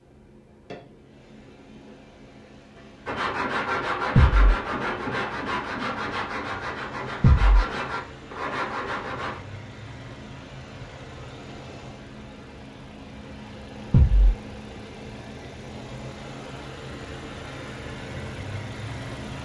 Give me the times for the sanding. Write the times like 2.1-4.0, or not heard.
3.0-9.4.